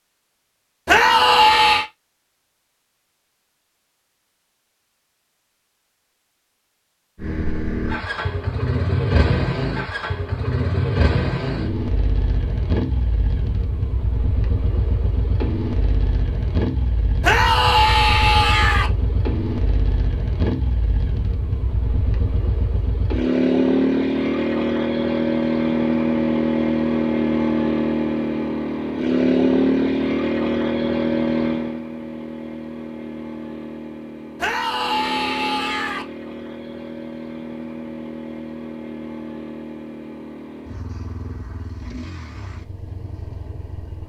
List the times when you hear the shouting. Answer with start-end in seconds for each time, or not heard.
0.8-1.9, 17.2-18.9, 34.4-36.0.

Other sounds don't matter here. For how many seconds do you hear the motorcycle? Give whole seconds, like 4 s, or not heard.
37 s.